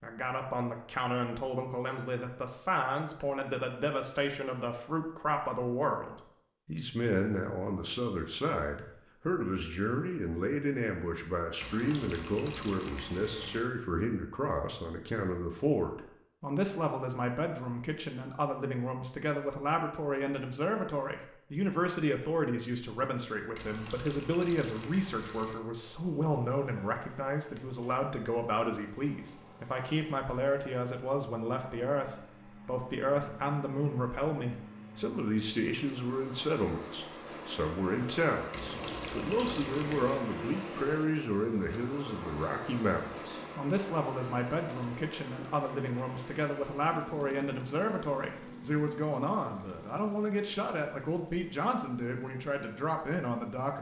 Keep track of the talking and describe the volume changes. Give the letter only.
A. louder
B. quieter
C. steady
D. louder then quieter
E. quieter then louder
C.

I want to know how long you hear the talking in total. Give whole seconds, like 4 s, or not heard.
54 s.